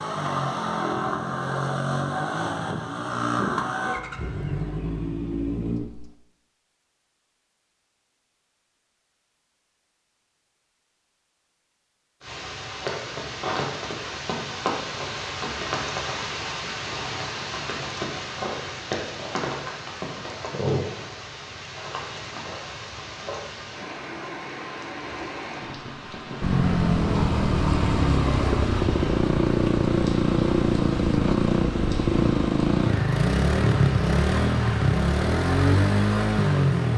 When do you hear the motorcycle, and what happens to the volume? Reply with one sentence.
The motorcycle can be heard from 0.0 to 6.1 s, at a steady volume; and from 26.4 to 36.9 s, at a steady volume.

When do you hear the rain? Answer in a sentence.
You can hear the rain from 12.2 to 36.9 s.